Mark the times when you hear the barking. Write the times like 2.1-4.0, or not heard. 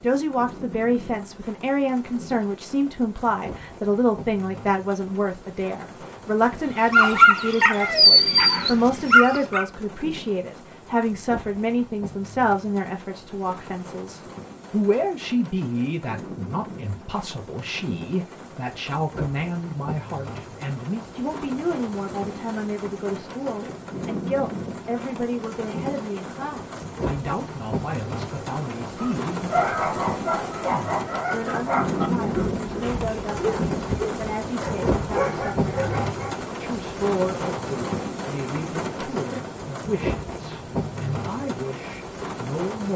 6.9-9.7, 28.9-36.4.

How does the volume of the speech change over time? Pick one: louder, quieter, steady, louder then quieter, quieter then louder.
quieter.